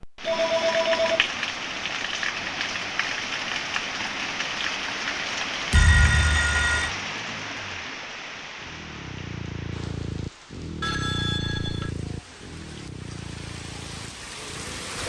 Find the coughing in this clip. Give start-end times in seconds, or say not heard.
not heard.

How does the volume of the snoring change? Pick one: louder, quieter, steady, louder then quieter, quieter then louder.
louder then quieter.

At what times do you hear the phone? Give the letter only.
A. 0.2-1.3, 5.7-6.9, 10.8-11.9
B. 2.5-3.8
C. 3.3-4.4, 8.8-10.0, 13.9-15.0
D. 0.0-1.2
A.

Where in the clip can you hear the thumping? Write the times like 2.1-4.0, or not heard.
5.7-6.9.